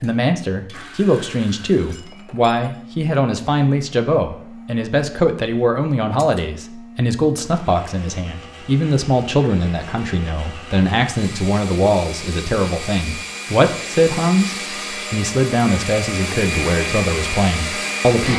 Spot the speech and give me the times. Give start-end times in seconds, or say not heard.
0.0-18.3.